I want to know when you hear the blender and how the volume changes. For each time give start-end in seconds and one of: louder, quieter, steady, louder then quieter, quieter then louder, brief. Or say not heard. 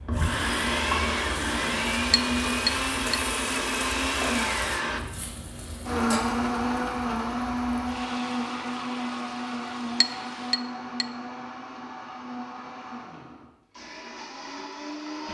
0.1-15.3 quieter.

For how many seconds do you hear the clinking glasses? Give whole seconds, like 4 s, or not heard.
2 s.